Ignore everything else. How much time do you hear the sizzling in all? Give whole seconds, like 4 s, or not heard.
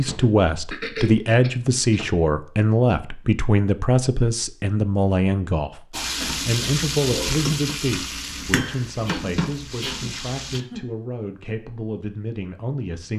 5 s.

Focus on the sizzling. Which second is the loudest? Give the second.
7 s.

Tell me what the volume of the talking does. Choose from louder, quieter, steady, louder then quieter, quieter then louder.
quieter.